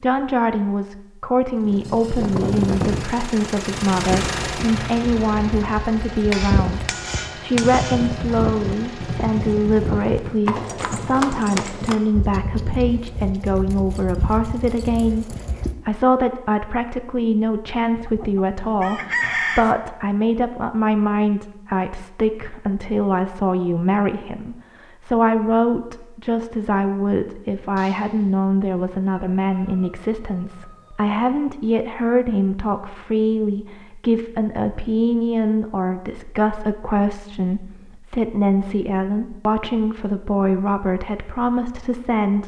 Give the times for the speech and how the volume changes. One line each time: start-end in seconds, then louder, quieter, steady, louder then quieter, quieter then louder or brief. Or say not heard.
0.0-42.4 steady.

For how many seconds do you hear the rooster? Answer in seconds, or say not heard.
5 s.